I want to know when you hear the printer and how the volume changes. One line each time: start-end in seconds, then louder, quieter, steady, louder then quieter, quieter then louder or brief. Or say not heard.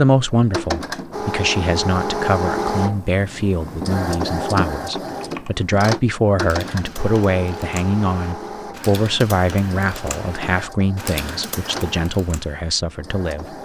0.1-13.5 quieter.